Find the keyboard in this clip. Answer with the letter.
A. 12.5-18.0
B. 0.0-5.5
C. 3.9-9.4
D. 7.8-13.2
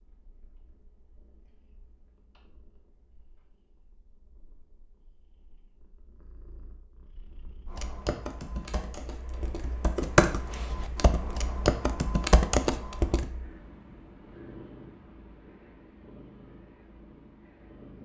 D.